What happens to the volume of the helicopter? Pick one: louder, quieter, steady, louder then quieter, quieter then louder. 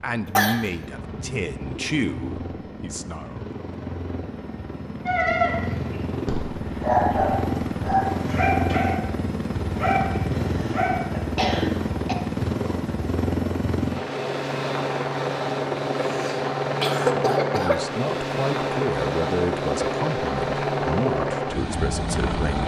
louder.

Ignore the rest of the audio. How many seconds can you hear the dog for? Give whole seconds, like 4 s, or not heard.
6 s.